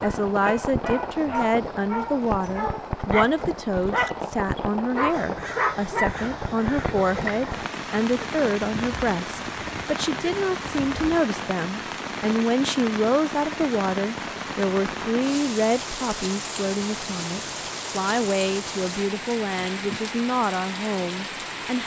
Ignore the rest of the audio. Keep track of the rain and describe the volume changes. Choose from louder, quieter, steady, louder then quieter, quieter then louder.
steady.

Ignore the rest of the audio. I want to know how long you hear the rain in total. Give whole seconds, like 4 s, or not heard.
22 s.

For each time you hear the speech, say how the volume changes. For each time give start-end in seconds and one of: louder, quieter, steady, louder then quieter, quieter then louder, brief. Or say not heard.
0.0-21.8 steady.